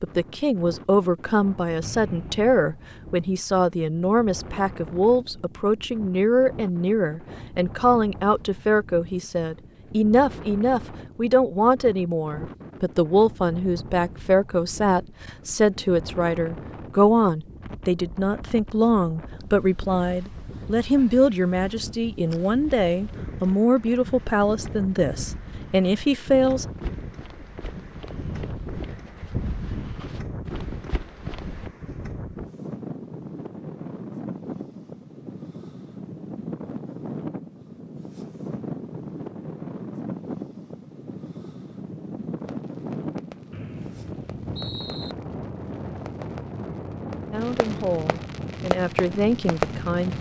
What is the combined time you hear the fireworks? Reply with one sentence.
You can hear the fireworks for 8 seconds altogether.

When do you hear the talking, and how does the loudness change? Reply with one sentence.
You can hear the talking from 0.0 to 26.6 s, at a steady volume; and briefly from 47.3 to 50.1 s.